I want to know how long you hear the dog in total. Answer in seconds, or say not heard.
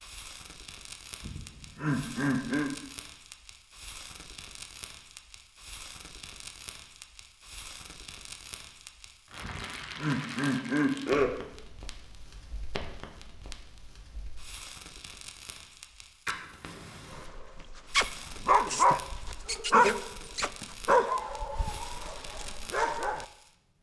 6 s.